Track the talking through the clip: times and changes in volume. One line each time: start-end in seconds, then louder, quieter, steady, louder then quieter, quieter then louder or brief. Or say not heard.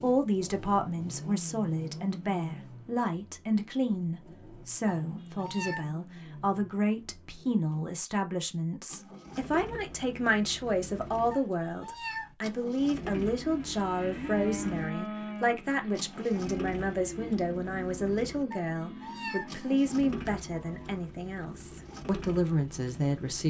0.0-23.4 steady.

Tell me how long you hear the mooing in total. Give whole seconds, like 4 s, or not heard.
8 s.